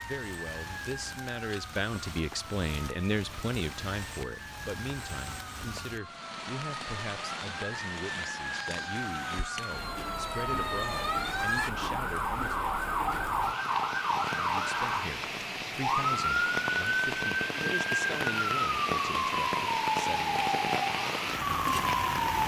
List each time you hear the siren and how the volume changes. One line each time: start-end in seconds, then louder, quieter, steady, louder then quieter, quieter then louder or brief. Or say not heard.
0.0-22.4 louder.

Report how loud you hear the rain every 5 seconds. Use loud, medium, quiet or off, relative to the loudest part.
quiet, medium, medium, loud, loud.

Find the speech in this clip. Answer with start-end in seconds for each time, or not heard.
0.0-12.7, 14.2-20.5.